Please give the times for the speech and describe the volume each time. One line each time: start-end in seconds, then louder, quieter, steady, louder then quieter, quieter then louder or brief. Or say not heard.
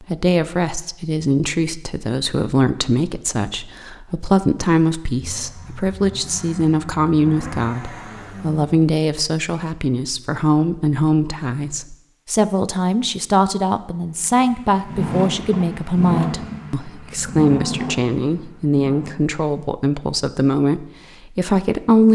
0.0-22.1 steady.